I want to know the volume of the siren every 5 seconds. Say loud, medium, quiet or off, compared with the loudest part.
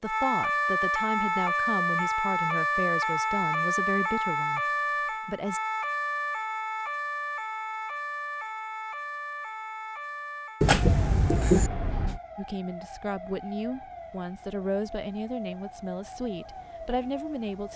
loud, medium, quiet, quiet.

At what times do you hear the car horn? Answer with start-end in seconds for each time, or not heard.
10.6-12.2.